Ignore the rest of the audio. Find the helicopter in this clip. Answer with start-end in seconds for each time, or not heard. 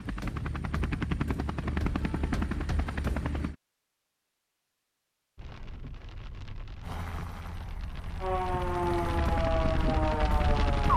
0.0-3.5, 6.8-10.9.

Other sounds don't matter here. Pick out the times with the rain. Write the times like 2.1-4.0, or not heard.
5.3-10.9.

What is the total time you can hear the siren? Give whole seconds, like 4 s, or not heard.
3 s.